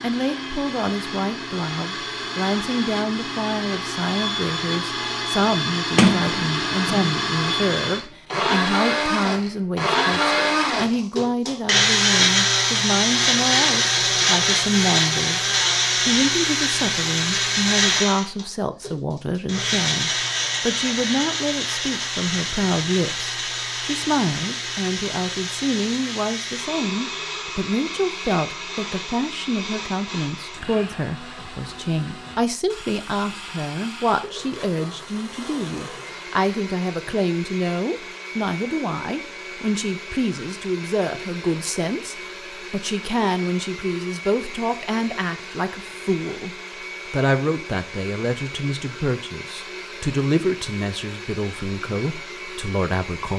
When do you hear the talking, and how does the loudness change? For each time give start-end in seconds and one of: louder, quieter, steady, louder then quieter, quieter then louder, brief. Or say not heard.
0.0-53.3 steady.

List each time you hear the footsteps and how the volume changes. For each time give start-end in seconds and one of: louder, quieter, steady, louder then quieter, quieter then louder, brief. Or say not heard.
not heard.